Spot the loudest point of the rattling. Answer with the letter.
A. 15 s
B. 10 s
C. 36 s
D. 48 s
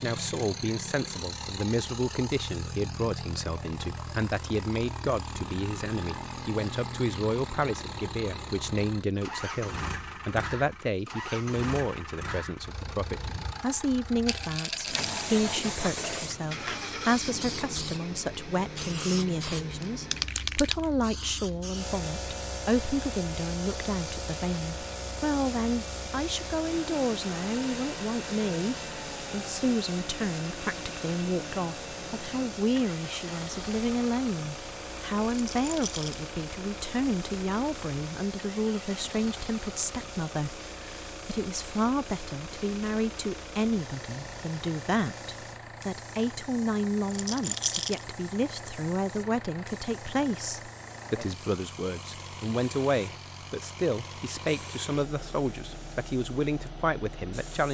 D.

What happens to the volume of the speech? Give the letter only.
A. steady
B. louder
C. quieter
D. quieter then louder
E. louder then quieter
A.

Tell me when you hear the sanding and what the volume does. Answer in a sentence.
You can't hear the sanding here.